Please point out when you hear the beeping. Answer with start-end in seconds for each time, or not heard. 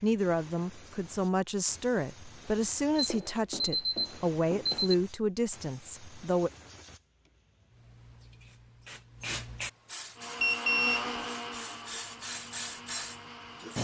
3.0-5.0, 10.4-11.5.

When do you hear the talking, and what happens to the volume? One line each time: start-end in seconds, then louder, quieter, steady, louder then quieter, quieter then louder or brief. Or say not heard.
0.0-6.5 steady.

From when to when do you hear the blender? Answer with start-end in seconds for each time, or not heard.
10.2-13.7.